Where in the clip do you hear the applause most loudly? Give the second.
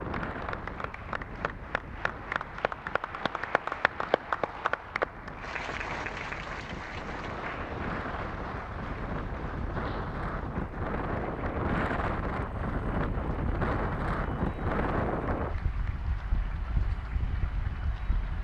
5 s.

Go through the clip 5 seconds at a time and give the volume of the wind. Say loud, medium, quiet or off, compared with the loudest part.
medium, medium, loud, medium.